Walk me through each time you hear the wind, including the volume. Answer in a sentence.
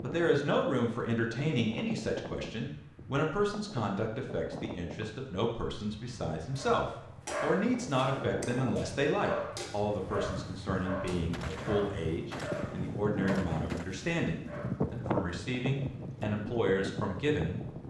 You can hear the wind from 0.0 to 17.8 s, getting louder.